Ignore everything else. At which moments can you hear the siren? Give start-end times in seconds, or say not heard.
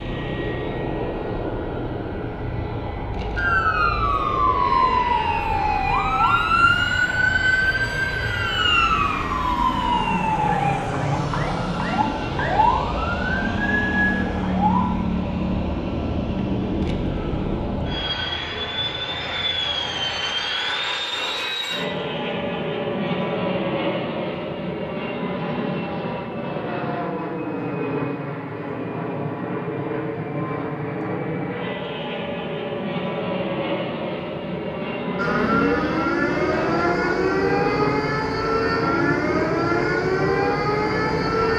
3.4-15.1, 35.1-41.5.